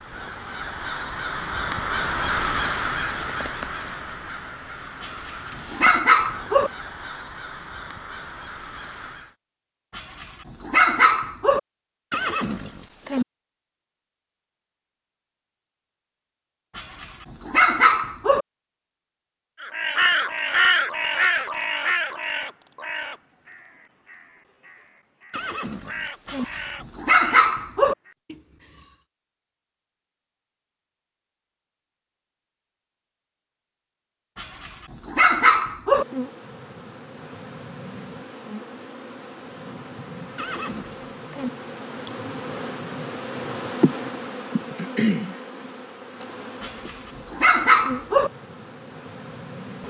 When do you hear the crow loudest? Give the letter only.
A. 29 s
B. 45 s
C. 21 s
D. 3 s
C.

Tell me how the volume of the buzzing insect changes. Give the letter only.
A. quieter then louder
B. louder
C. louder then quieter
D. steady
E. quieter
C.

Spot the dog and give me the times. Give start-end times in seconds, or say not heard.
5.0-6.7, 9.9-11.6, 16.8-18.4, 26.2-27.9, 34.4-36.0, 46.6-48.3.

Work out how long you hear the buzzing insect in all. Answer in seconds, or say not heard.
14 s.